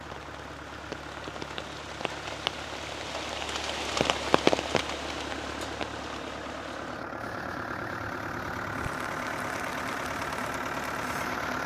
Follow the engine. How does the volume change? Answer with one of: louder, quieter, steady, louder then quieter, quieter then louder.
louder.